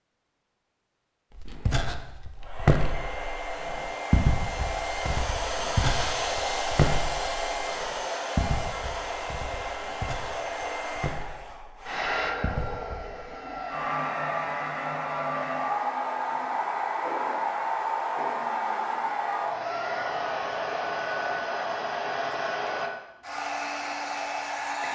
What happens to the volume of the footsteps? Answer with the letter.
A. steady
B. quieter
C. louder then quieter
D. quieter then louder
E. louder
B.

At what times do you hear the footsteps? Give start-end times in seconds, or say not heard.
1.4-13.2.